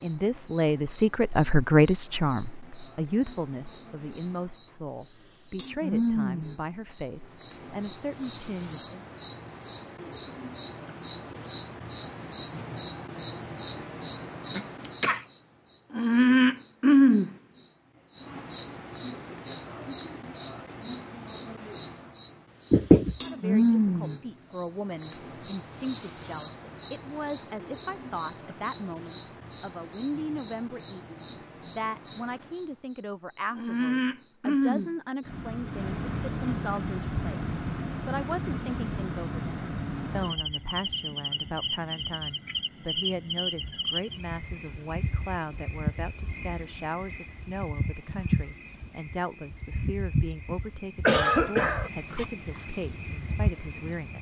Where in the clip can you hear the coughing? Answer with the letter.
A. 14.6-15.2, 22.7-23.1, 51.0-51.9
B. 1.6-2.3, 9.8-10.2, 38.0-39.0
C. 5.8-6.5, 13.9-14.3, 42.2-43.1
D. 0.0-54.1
A.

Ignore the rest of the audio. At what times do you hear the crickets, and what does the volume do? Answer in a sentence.
You can hear the crickets from 0.0 to 54.1 s, getting louder then quieter.